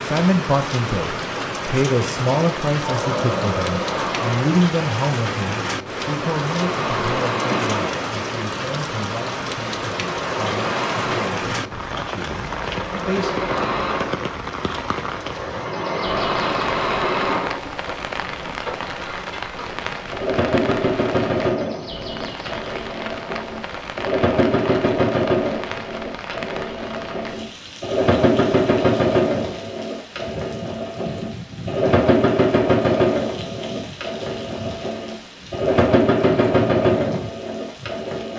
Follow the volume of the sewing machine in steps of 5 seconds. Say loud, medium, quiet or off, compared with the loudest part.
medium, medium, medium, medium, loud, loud, loud, loud.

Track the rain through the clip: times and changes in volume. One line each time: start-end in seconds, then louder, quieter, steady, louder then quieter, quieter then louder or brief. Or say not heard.
0.0-38.3 quieter.